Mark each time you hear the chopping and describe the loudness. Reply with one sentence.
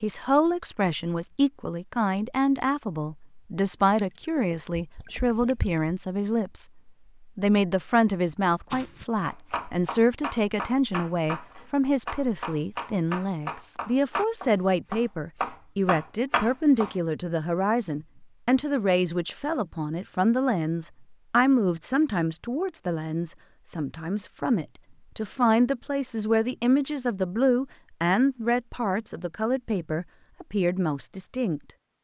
You can hear the chopping from 8.7 to 16.9 s, getting louder.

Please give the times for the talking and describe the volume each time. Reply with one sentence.
You can hear the talking from 0.0 to 31.6 s, at a steady volume.